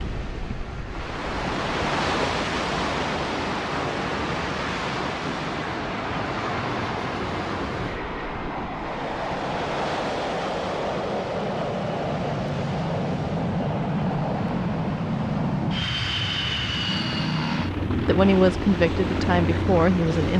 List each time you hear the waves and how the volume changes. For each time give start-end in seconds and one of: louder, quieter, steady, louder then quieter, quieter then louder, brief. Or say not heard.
0.0-20.3 quieter.